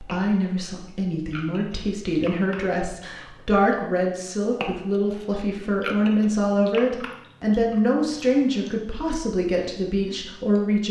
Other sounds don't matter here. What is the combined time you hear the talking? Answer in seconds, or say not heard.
11 s.